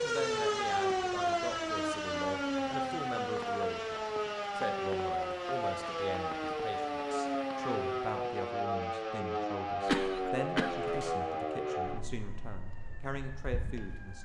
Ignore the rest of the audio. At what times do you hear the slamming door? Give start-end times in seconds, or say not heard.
not heard.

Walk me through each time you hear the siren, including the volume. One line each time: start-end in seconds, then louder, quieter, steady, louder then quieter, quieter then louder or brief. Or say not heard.
0.0-14.2 quieter.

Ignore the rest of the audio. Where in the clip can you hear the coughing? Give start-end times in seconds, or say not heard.
9.8-11.1.